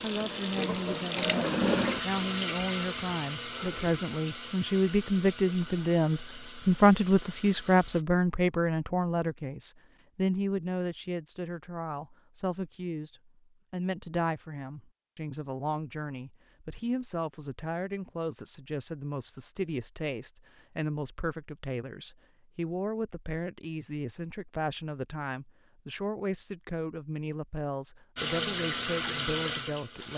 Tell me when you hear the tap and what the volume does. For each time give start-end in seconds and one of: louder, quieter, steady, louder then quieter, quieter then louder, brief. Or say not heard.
0.0-8.1 quieter
28.1-30.1 brief.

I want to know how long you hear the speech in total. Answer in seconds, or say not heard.
30 s.